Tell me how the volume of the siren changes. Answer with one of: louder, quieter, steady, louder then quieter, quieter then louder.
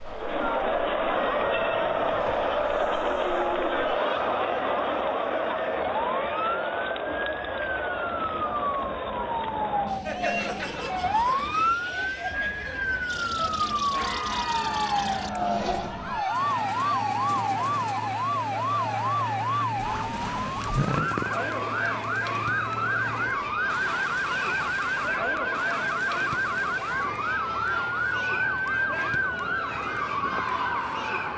louder.